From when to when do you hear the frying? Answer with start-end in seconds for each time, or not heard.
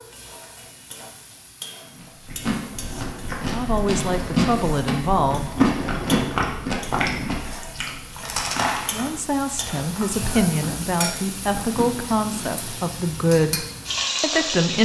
0.0-14.7.